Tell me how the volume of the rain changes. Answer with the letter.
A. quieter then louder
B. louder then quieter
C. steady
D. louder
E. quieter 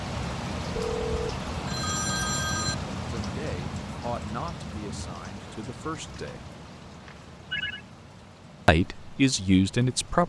E.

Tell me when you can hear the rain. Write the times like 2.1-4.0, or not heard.
0.0-10.2.